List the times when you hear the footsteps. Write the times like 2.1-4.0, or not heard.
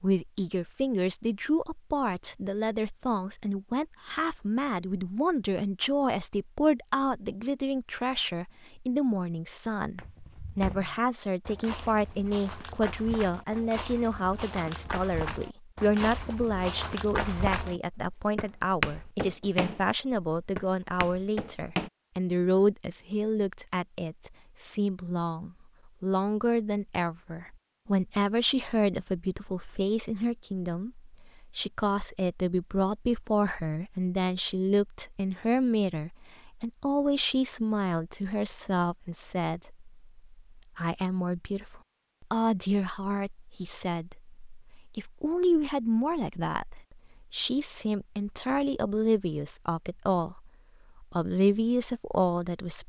9.9-21.9.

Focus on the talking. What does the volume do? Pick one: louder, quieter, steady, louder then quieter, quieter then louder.
steady.